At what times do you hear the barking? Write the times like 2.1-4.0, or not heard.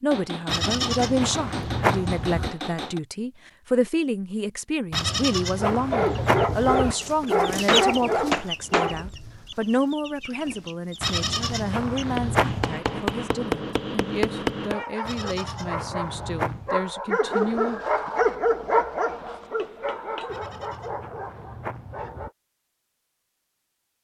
5.6-9.1, 14.6-22.4.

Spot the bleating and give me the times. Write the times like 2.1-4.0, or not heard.
0.5-2.5, 4.9-7.0, 11.0-12.8, 15.1-16.7, 20.2-22.3.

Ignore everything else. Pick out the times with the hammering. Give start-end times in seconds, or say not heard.
0.1-3.0, 7.7-8.9, 12.2-14.8, 19.1-20.4.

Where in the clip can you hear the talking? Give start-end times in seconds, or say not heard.
0.0-17.8.